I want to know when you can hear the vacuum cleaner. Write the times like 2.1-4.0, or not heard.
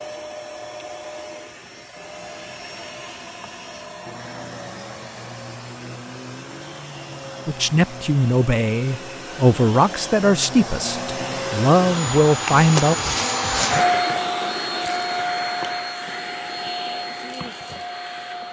0.0-18.4.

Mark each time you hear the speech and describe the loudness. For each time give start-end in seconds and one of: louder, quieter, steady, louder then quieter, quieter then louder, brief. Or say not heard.
7.5-12.9 quieter then louder.